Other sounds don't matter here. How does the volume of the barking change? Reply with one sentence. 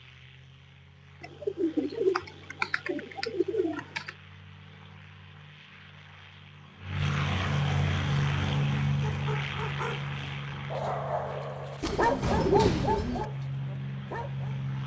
The volume of the barking goes up, then down.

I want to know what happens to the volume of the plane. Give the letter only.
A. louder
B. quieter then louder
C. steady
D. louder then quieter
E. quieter
D.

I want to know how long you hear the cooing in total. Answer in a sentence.
The cooing can be heard for 4 seconds in total.